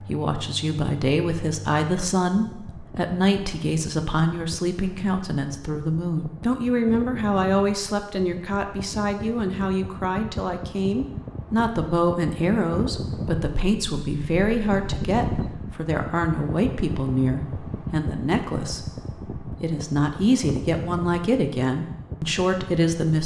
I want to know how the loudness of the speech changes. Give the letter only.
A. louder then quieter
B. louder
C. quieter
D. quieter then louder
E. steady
E.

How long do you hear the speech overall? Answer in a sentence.
You can hear the speech for 23 seconds altogether.